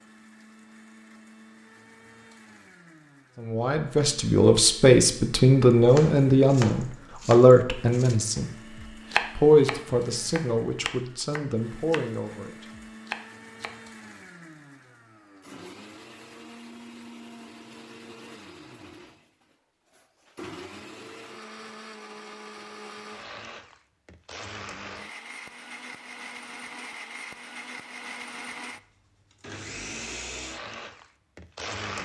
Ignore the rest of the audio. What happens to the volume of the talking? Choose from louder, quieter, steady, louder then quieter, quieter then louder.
quieter.